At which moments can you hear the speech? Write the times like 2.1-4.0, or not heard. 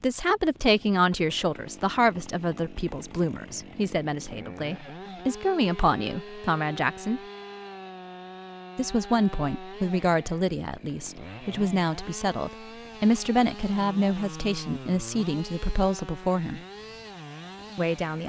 0.0-7.2, 8.8-16.6, 17.8-18.2.